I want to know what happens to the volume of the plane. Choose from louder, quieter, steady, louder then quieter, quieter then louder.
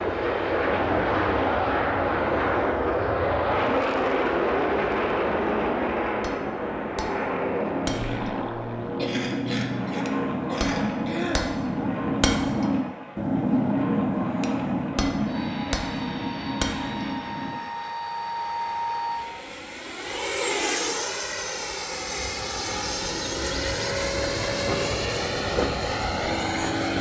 quieter then louder.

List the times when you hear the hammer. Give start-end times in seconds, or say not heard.
6.2-17.6.